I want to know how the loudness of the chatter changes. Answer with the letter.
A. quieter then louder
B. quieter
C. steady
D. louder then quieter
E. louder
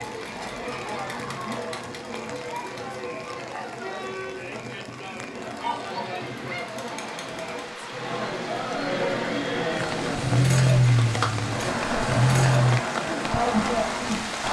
E.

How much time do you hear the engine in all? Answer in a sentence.
You can hear the engine for 3 seconds altogether.